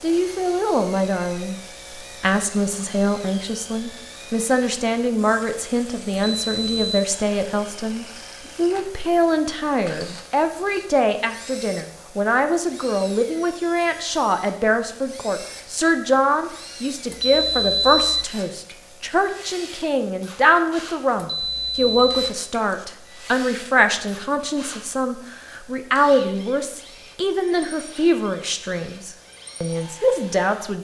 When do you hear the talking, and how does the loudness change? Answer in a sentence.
The talking can be heard briefly from 0.0 to 1.6 s; and from 2.2 to 30.8 s, at a steady volume.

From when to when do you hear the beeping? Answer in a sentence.
You can hear the beeping from 6.3 to 7.0 s, from 17.1 to 18.2 s and from 21.2 to 22.9 s.